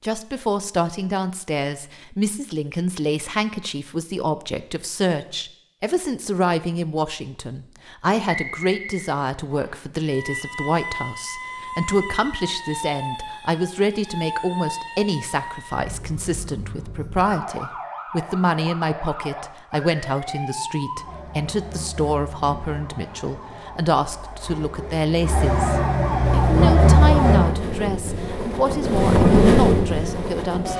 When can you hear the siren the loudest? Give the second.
27 s.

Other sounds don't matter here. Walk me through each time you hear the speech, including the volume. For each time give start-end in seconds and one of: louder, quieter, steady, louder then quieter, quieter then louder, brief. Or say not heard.
0.0-30.7 steady.